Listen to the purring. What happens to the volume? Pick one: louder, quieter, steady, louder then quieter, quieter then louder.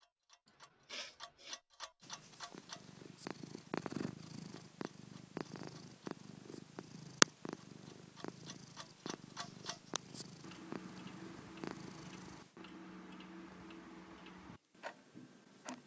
louder then quieter.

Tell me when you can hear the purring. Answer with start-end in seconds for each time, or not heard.
2.0-15.8.